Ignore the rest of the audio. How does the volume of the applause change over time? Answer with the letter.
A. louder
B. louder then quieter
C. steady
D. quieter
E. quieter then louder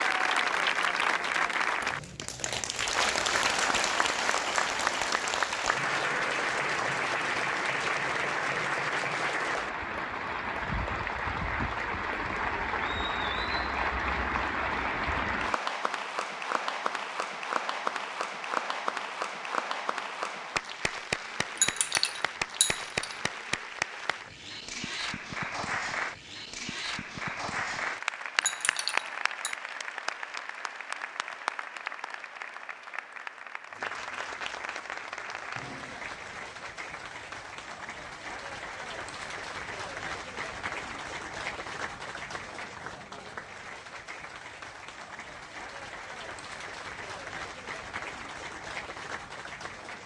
D.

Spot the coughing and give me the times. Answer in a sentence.
The coughing can't be heard in this clip.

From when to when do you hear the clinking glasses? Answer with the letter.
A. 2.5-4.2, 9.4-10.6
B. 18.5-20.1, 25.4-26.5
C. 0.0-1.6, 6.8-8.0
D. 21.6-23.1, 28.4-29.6
D.